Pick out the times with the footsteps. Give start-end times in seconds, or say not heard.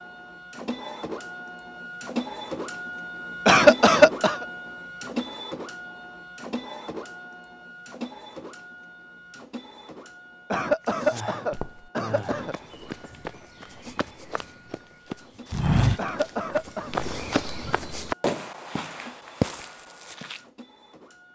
10.8-20.4.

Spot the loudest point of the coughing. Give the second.
4 s.